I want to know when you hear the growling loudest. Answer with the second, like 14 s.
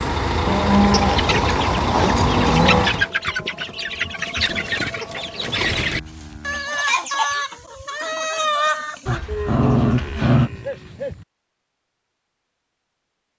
10 s.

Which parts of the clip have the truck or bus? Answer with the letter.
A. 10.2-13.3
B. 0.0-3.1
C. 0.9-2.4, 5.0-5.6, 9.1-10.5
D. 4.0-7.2
B.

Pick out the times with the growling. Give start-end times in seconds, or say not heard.
0.9-2.4, 5.0-5.6, 9.1-10.5.